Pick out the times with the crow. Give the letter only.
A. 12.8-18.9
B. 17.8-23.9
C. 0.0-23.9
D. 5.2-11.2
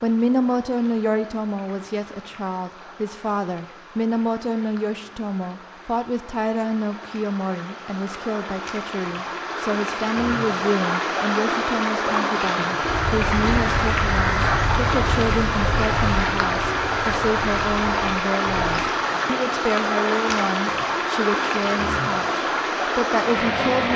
A.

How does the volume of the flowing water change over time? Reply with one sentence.
The volume of the flowing water goes up.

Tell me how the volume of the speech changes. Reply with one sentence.
The loudness of the speech stays about the same.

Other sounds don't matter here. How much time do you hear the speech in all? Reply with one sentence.
You can hear the speech for 24 seconds altogether.